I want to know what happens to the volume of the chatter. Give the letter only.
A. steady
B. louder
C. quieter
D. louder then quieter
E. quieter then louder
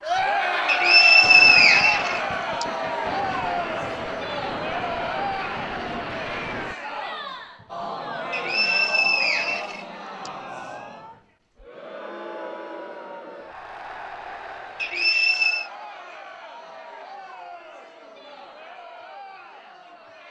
C.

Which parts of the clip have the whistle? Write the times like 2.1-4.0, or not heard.
0.7-2.6, 8.3-10.3, 14.8-15.7.